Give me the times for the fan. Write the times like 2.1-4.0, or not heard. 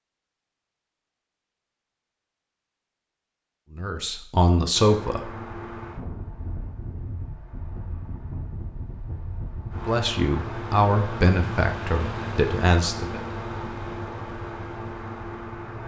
4.7-15.8.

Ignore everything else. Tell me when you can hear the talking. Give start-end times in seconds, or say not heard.
3.7-5.5, 9.8-13.2.